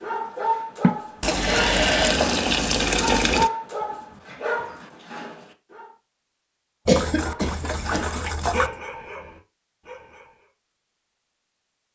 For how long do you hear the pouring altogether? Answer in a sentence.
The pouring can be heard for 4 seconds in total.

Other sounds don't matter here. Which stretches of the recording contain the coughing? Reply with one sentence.
The coughing can be heard from 0.8 to 2.2 s and from 6.8 to 8.1 s.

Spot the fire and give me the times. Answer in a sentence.
The fire can't be heard in this clip.